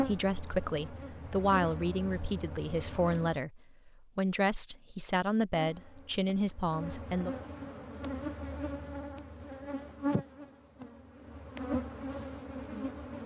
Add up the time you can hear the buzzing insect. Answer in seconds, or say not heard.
11 s.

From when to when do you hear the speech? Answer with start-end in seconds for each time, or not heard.
0.0-7.3.